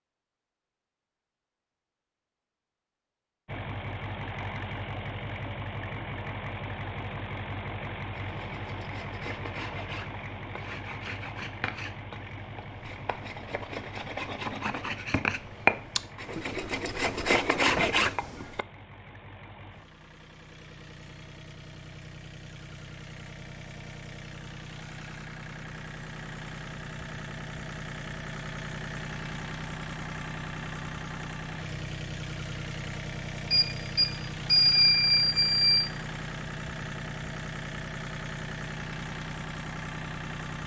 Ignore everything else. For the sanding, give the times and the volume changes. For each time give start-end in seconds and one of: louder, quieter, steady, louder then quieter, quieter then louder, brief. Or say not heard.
8.1-18.6 louder.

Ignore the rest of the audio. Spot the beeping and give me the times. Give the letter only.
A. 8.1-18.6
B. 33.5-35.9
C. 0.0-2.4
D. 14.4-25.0
B.